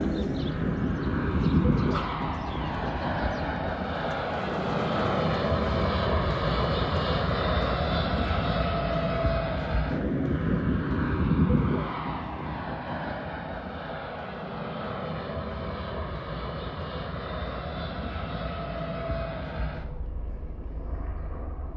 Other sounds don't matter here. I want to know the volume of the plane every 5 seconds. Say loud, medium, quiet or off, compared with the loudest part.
loud, loud, loud, medium, quiet.